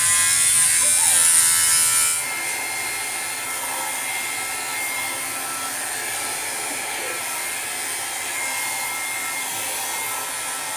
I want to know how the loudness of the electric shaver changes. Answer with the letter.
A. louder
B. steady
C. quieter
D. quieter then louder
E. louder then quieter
C.